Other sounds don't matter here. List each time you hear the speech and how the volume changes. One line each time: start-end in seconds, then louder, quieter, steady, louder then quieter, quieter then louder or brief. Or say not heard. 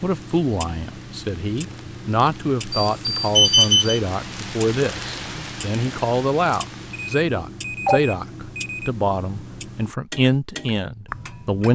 0.0-11.6 steady.